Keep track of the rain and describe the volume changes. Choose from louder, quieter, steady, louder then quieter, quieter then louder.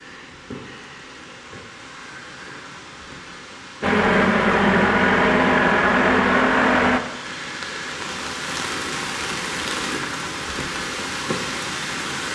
louder.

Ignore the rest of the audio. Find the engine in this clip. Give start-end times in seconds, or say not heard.
3.8-7.0.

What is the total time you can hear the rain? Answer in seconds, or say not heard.
12 s.